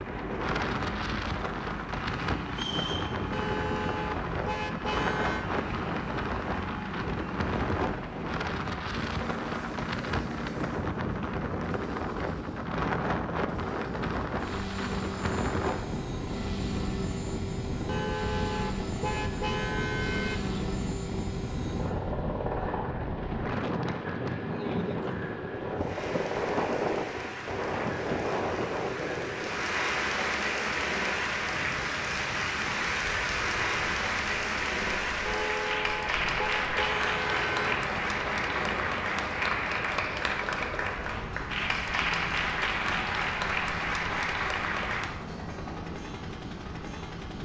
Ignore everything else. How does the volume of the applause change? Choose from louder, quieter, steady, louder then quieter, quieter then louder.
louder.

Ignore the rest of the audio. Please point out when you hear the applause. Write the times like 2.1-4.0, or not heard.
25.8-45.2.